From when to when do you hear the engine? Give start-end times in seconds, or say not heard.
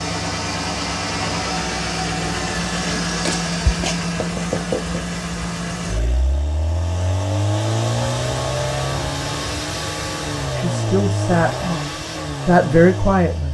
0.0-13.4.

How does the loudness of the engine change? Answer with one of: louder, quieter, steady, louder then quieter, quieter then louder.
steady.